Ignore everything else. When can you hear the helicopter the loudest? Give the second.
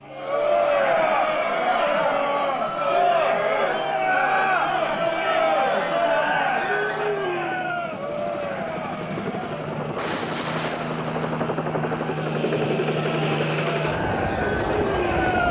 13 s.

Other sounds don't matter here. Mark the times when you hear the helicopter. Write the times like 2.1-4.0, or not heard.
0.0-15.4.